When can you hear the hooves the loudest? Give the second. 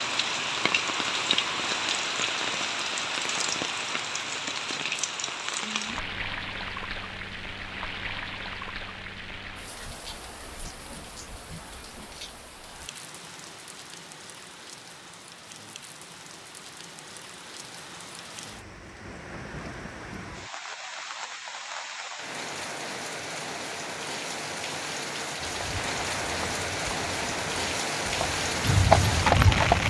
29 s.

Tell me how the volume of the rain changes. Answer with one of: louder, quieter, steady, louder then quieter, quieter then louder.
quieter then louder.